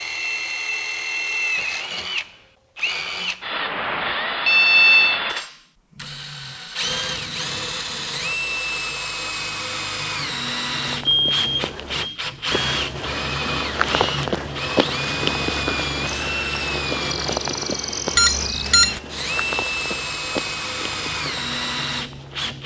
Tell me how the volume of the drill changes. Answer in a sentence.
The loudness of the drill stays about the same.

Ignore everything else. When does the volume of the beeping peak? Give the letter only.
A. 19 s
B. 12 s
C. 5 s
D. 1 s
C.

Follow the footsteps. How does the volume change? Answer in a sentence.
The volume of the footsteps goes up, then down.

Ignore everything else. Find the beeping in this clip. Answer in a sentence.
The beeping can be heard from 4.5 to 5.2 s, from 11.1 to 12.2 s and from 18.1 to 19.0 s.